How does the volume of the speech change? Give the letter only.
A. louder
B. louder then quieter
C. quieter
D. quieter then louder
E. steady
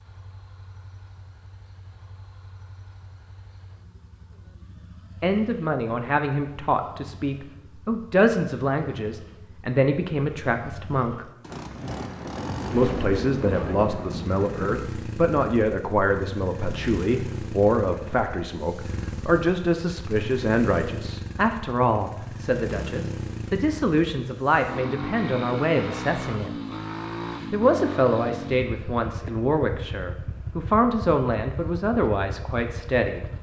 E.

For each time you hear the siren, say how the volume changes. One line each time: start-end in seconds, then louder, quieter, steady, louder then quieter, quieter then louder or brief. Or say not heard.
not heard.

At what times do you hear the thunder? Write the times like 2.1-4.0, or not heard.
11.4-14.8.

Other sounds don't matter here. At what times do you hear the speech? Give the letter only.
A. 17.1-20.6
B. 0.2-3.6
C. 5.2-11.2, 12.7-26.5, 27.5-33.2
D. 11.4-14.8
C.